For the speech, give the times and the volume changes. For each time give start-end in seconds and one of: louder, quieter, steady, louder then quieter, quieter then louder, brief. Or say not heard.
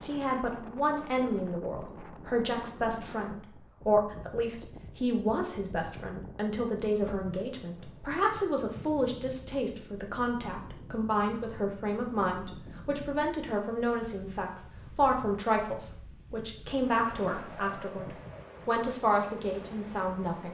0.0-20.4 steady.